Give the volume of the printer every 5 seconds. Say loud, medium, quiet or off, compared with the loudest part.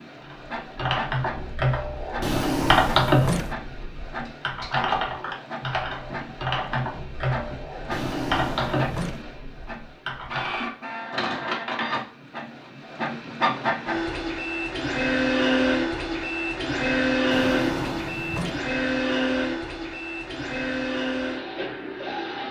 quiet, quiet, medium, loud, medium.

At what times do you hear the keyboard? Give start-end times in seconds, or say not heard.
0.2-10.7.